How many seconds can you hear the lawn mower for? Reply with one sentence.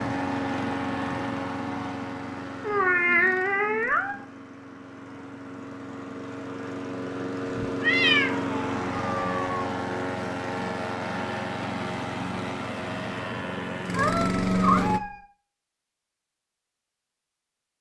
You can hear the lawn mower for 15 seconds altogether.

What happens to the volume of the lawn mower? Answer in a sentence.
The loudness of the lawn mower goes down, then up.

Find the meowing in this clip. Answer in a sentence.
The meowing can be heard from 2.6 to 4.2 s, from 7.5 to 9.5 s and from 13.9 to 15.2 s.